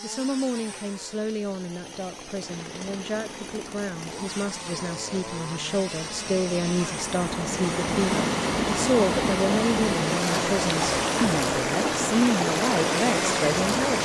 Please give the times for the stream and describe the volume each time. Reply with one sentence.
The stream can be heard from 2.4 to 14.0 s, getting louder.